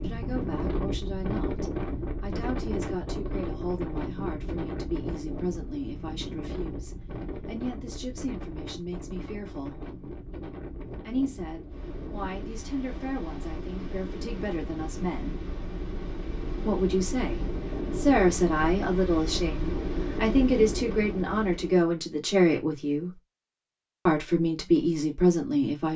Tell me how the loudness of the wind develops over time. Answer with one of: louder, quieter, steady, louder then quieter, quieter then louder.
quieter then louder.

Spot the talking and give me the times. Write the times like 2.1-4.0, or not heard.
0.0-9.9, 11.1-15.3, 16.6-23.1, 24.1-25.9.